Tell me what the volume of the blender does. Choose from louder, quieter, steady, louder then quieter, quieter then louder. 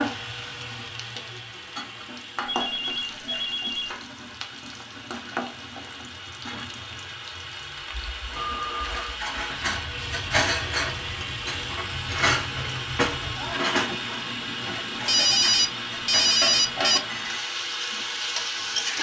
louder.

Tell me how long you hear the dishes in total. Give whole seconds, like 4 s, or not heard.
9 s.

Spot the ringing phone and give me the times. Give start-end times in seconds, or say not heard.
2.5-4.0, 8.3-9.2, 15.1-17.0.